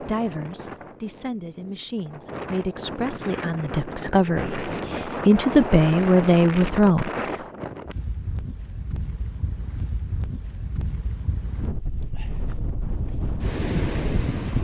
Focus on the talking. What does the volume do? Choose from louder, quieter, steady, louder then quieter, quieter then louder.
louder.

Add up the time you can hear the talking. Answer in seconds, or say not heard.
7 s.